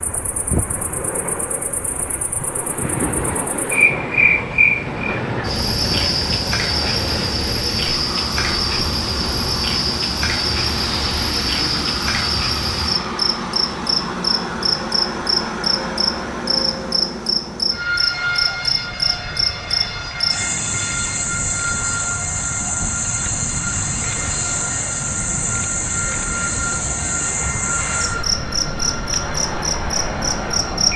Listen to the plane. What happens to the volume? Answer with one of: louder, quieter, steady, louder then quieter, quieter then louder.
steady.